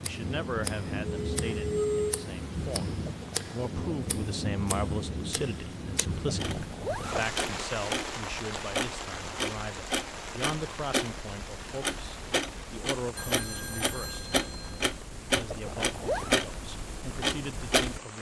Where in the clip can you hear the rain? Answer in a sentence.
The rain can be heard from 0.0 to 18.1 s.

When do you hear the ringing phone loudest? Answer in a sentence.
The loudest moment of the ringing phone is at 2 seconds.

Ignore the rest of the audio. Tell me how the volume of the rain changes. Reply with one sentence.
The volume of the rain goes down.